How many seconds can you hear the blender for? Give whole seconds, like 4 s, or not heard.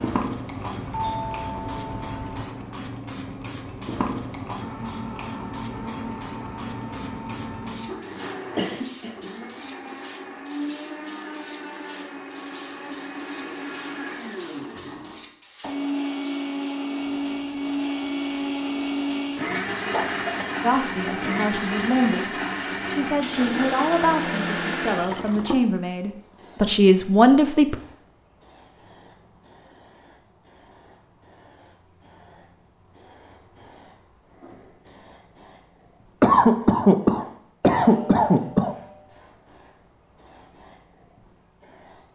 21 s.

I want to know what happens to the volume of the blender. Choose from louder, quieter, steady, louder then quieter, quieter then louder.
louder.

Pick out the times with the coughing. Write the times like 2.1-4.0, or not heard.
8.6-9.8, 19.9-20.6, 36.2-38.8.